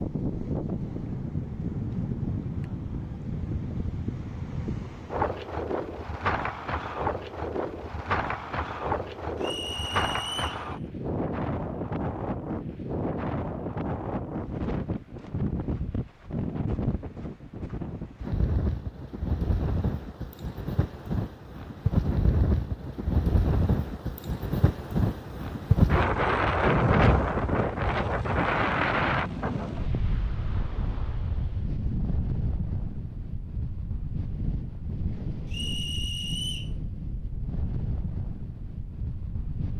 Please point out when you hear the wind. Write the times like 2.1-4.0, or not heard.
0.0-39.7.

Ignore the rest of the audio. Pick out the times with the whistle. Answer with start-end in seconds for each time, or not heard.
9.4-10.7, 35.5-36.7.